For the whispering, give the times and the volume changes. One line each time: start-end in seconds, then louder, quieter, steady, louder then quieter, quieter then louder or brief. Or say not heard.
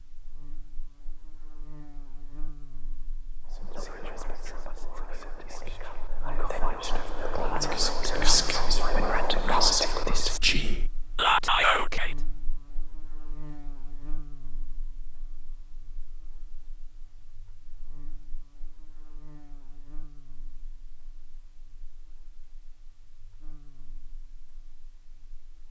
3.5-12.2 louder.